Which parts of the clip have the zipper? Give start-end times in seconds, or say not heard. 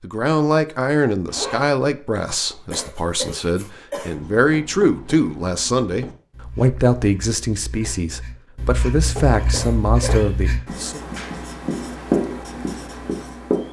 1.2-1.7.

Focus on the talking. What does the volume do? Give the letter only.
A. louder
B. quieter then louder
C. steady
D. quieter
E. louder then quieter
C.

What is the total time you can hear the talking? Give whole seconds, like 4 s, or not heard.
11 s.